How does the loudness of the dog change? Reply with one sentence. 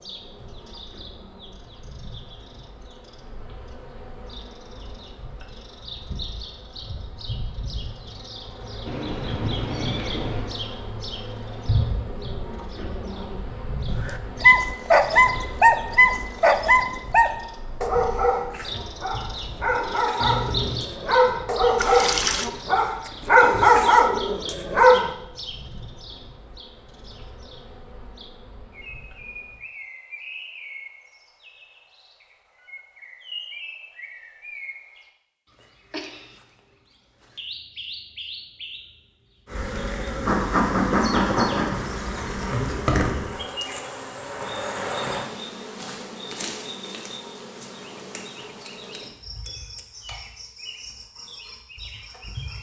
The loudness of the dog goes down, then up.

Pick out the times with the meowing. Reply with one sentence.
You can hear the meowing from 8.8 to 10.6 s, from 20.2 to 20.9 s and from 35.9 to 36.4 s.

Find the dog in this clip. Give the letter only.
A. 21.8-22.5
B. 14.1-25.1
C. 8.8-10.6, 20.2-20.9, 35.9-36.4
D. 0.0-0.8
B.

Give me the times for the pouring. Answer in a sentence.
The pouring can be heard from 21.8 to 22.5 s.